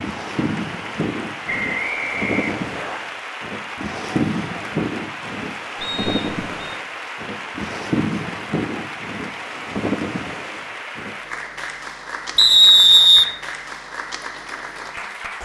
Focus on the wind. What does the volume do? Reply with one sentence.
The loudness of the wind stays about the same.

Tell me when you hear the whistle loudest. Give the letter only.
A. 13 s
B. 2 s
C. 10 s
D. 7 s
A.